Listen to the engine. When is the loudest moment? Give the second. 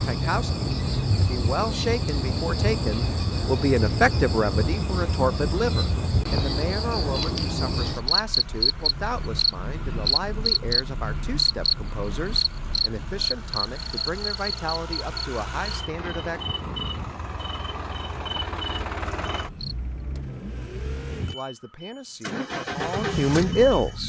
23 s.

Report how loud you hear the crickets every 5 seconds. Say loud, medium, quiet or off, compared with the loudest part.
loud, loud, loud, medium, off.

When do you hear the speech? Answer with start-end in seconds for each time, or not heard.
0.0-16.4, 21.2-24.0.